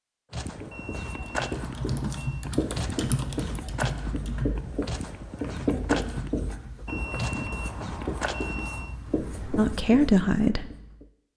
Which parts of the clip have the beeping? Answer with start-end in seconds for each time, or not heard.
0.7-2.5, 6.8-9.0.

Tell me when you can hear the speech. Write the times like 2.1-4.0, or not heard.
9.6-10.7.